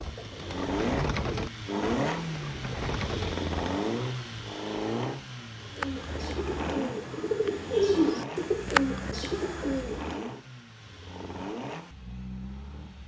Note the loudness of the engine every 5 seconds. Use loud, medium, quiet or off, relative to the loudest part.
loud, medium, medium.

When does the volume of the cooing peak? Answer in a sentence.
The loudest moment of the cooing is at 8 seconds.